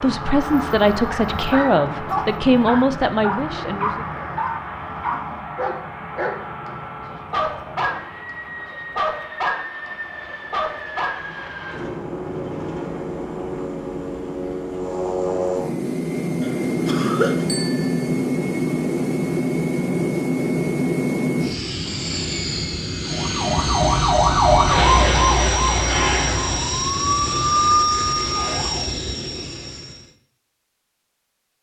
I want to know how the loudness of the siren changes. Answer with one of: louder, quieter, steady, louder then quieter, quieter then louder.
quieter.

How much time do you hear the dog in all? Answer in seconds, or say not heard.
10 s.